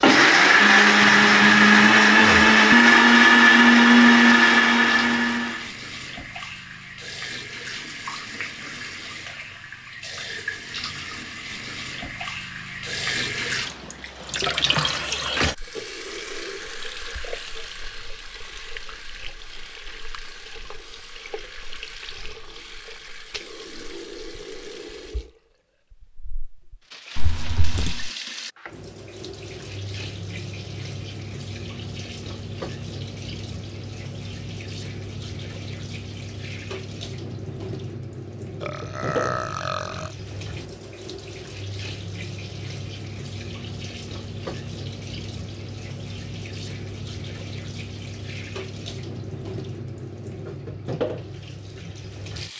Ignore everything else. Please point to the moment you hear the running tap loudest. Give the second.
15 s.